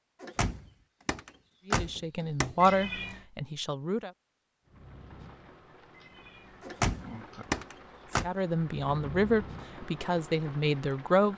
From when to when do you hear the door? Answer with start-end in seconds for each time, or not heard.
0.2-2.7, 6.6-8.3.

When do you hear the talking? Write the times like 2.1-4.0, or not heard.
1.6-4.1, 8.2-11.3.